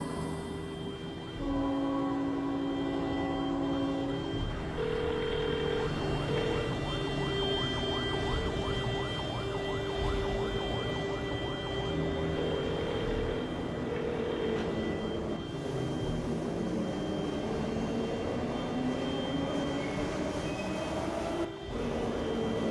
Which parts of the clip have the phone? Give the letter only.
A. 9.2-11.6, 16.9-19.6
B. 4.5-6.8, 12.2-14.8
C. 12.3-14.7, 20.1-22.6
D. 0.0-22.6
B.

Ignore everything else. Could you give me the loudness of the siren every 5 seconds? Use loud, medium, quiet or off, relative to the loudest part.
medium, loud, loud, medium, medium.